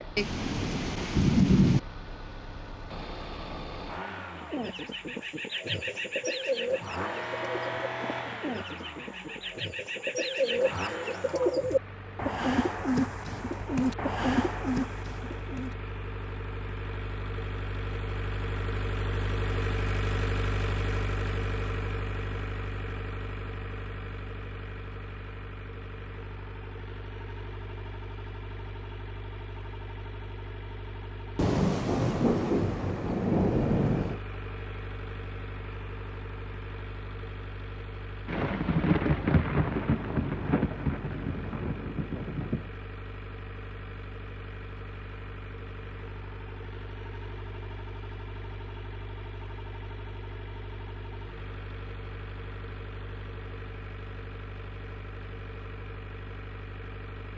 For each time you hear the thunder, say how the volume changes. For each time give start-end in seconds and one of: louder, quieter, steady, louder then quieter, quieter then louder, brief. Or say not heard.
0.1-1.8 brief
31.4-34.2 brief
38.2-42.7 quieter.